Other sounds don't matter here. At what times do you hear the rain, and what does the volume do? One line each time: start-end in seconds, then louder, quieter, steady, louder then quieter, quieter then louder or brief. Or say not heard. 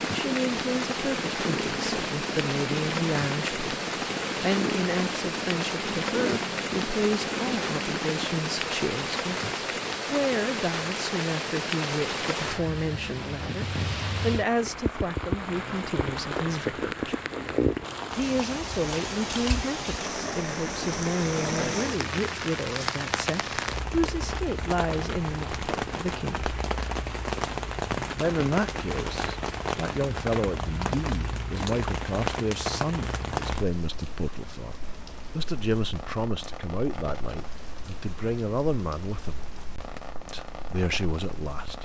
0.0-41.8 quieter.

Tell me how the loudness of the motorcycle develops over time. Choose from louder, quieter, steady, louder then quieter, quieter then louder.
steady.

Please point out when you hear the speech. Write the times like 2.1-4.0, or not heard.
0.1-17.1, 18.1-26.6, 28.1-39.5, 40.3-41.8.